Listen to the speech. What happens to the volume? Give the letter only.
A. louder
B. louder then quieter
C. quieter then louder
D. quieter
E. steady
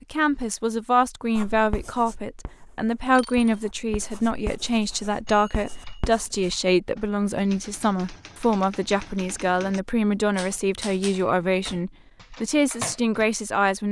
E.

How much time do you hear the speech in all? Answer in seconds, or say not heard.
14 s.